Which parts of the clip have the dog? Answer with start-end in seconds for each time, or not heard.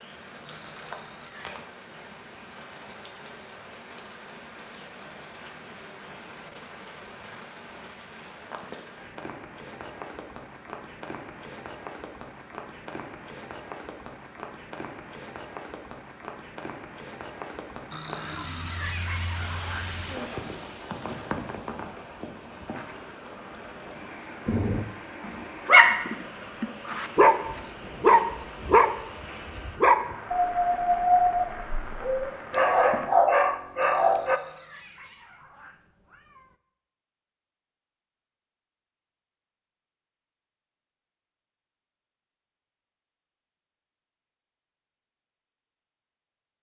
24.4-34.4.